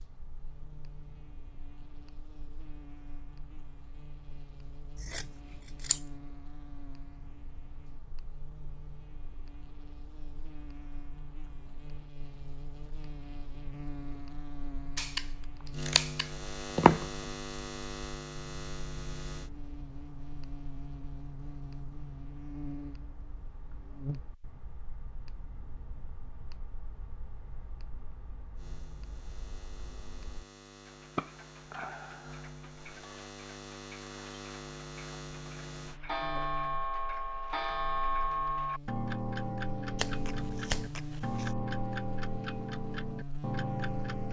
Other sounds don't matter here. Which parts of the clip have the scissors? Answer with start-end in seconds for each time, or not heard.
5.0-6.0, 14.9-17.2, 40.0-41.5.